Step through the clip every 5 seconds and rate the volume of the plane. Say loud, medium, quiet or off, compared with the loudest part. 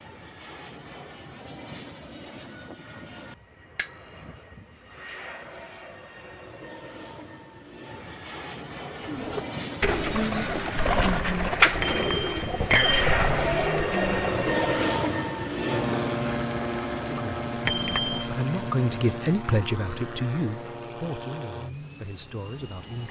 quiet, medium, loud, loud, medium.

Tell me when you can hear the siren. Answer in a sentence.
You can't hear the siren here.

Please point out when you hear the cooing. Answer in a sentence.
The cooing can be heard from 9.0 to 14.9 s.